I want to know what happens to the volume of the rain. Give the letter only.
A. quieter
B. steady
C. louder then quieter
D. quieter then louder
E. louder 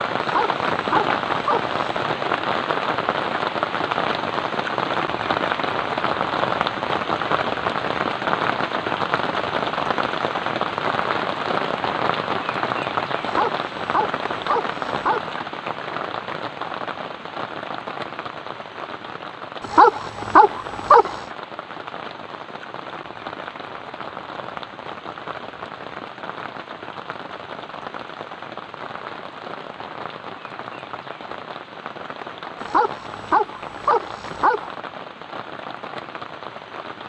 A.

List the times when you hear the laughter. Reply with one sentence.
The laughter can't be heard in this clip.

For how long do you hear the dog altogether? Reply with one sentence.
You can hear the dog for 8 seconds altogether.